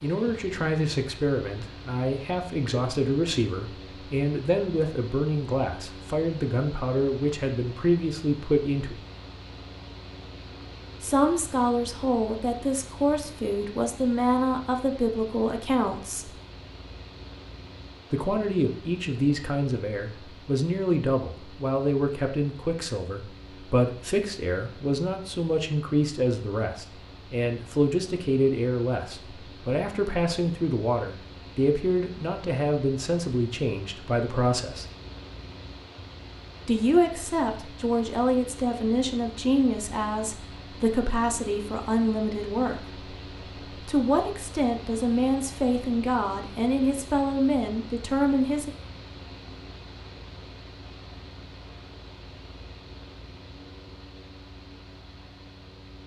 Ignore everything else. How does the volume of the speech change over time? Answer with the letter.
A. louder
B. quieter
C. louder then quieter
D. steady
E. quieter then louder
D.